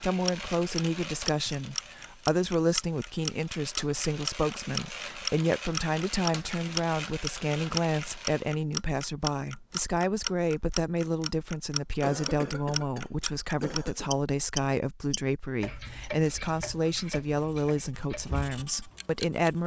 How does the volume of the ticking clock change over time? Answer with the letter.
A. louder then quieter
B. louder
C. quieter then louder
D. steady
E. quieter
E.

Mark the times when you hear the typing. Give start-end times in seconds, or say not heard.
not heard.